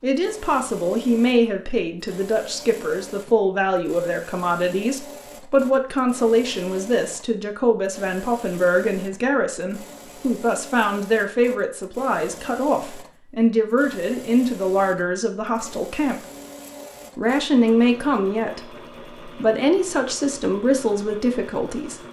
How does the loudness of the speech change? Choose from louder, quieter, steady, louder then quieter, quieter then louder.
steady.